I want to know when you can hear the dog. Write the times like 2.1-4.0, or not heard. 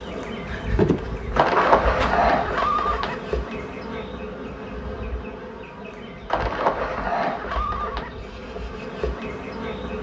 0.5-2.2.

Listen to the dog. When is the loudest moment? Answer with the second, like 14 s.
1 s.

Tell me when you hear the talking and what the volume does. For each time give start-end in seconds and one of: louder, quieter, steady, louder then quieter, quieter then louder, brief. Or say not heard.
not heard.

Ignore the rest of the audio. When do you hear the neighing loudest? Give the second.
2 s.